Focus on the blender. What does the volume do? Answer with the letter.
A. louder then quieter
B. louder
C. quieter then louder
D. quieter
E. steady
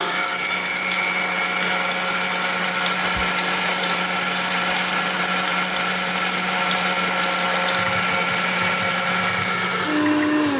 E.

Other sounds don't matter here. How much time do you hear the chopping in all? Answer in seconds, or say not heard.
not heard.